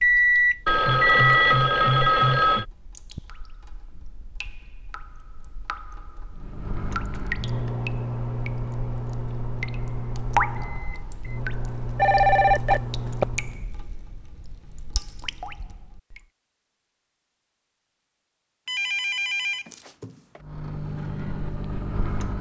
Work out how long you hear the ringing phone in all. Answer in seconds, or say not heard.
5 s.